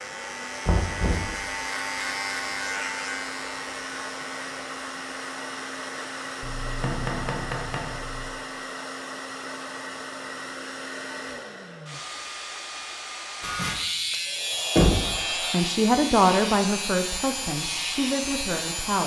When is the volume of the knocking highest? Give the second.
15 s.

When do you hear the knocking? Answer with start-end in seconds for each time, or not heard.
0.7-1.4, 6.4-8.3, 14.8-15.2.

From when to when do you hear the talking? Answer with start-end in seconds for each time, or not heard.
15.5-19.0.